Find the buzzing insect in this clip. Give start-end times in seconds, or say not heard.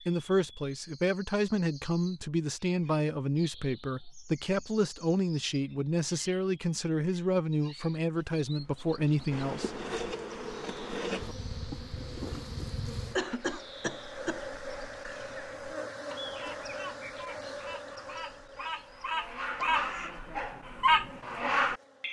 9.3-22.0.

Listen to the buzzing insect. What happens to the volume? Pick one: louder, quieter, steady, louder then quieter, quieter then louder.
quieter.